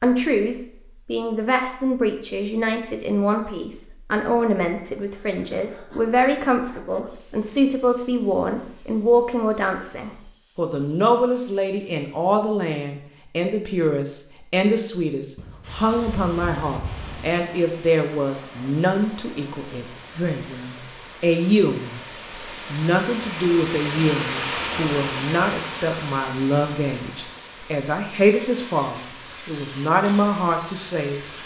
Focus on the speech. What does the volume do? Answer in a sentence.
The volume of the speech stays about the same.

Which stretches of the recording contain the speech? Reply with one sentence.
You can hear the speech from 0.0 to 22.0 s and from 22.7 to 31.4 s.